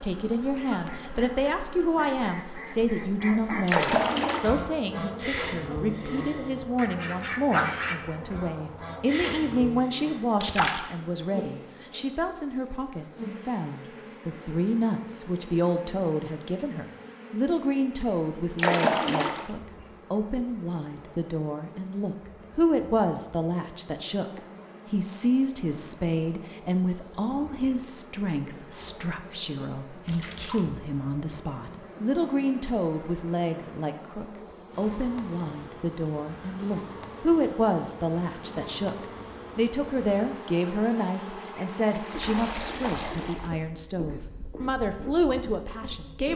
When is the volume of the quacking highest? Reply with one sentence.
The loudest moment of the quacking is at 8 seconds.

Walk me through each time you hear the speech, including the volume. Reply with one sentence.
You can hear the speech from 0.0 to 46.3 s, at a steady volume.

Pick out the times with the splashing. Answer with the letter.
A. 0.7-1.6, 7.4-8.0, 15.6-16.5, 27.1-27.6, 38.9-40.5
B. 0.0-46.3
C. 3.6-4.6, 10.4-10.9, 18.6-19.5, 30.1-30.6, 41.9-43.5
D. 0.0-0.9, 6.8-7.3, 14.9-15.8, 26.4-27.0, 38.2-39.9
C.